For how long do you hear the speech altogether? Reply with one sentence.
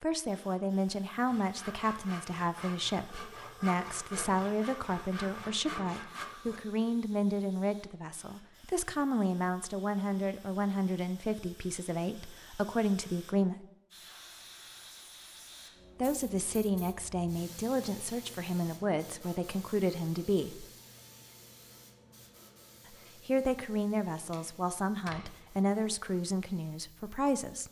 The speech can be heard for 23 seconds in total.